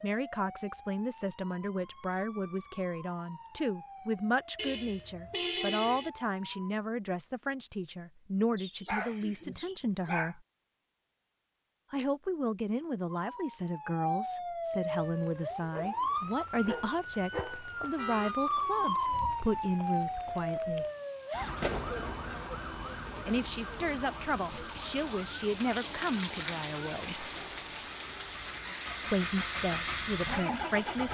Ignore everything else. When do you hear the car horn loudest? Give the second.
6 s.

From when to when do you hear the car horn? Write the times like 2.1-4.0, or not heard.
4.5-6.1, 17.9-18.4.